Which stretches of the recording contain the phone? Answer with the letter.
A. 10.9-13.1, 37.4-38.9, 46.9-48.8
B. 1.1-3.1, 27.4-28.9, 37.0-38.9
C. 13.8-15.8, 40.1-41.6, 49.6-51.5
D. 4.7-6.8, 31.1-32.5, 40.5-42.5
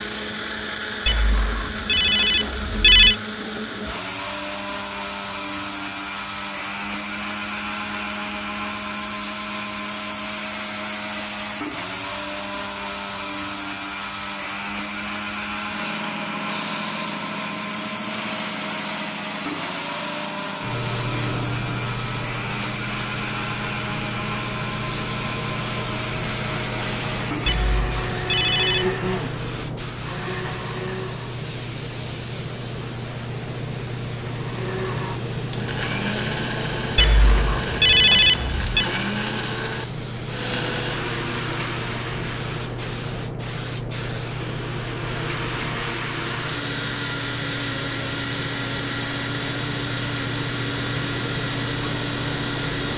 B.